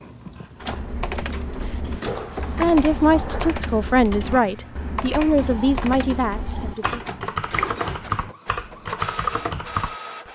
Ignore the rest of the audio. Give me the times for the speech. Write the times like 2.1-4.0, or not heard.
2.6-7.0.